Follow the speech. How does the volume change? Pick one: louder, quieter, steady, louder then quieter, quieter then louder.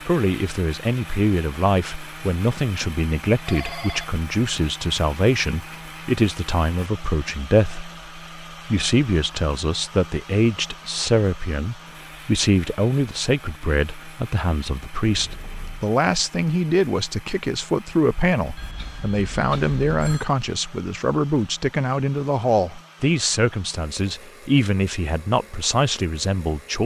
steady.